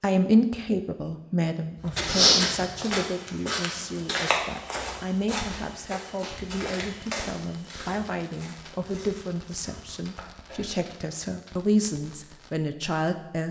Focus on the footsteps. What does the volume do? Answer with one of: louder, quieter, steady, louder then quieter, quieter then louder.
quieter.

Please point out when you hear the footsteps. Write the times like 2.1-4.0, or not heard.
1.8-10.8.